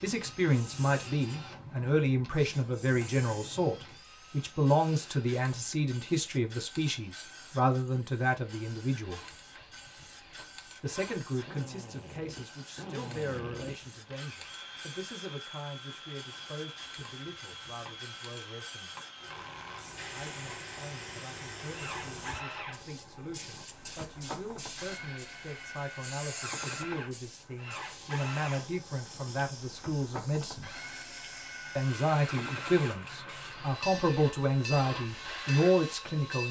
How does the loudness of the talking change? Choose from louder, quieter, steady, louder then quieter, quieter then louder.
quieter then louder.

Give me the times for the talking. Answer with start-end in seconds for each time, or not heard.
0.0-9.2, 10.8-18.9, 20.1-30.7, 31.8-36.4.